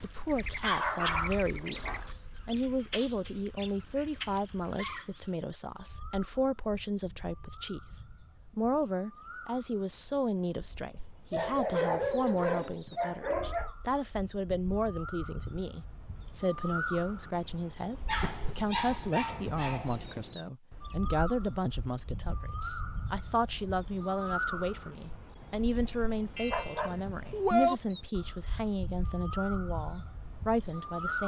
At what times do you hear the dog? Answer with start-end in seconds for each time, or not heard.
0.6-2.1, 11.3-13.7, 18.1-20.4, 26.4-27.8.